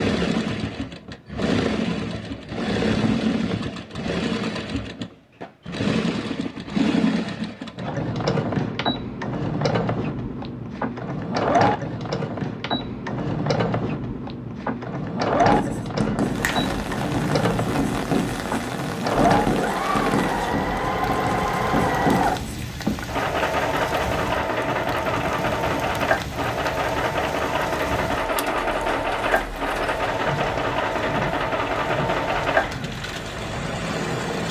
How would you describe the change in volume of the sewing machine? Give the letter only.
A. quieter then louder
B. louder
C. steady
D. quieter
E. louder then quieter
C.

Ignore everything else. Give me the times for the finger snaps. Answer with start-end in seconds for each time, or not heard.
15.9-16.7.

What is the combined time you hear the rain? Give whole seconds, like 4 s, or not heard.
18 s.